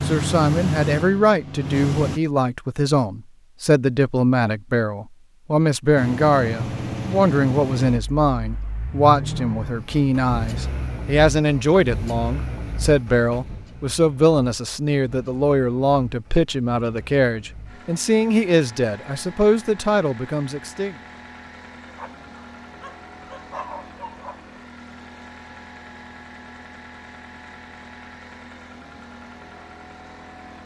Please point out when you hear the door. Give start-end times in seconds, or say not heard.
not heard.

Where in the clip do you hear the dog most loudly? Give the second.
24 s.